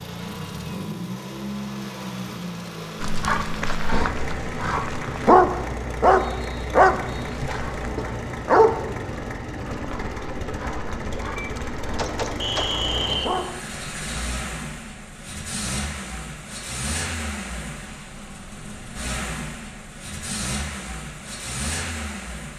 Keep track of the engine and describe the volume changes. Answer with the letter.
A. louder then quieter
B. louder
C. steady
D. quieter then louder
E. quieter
C.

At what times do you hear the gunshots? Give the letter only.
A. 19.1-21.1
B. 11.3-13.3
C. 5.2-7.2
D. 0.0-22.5
B.